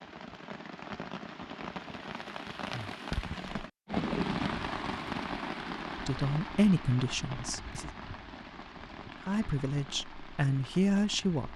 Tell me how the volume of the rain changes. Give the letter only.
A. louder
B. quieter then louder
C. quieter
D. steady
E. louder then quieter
E.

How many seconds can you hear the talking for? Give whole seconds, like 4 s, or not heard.
4 s.